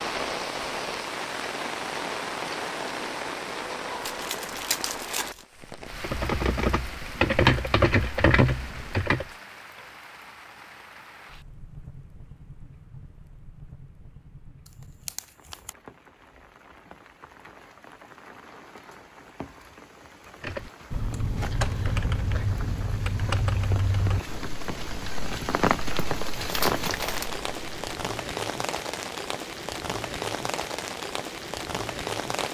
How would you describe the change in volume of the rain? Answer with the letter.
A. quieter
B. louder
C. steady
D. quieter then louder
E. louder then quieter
D.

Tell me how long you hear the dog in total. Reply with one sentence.
The dog can't be heard in this clip.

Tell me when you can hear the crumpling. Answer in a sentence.
You can hear the crumpling from 4.0 to 5.5 s, from 14.7 to 15.8 s and from 25.8 to 27.4 s.